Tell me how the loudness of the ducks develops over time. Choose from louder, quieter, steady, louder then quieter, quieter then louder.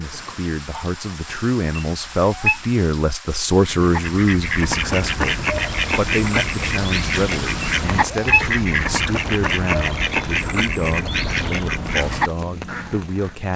steady.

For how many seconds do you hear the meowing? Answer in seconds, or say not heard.
2 s.